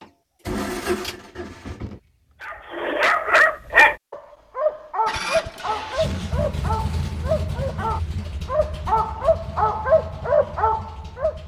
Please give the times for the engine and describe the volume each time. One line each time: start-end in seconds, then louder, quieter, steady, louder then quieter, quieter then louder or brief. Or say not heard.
0.0-2.6 brief
5.0-11.4 quieter.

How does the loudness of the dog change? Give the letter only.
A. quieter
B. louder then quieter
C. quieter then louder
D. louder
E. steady
C.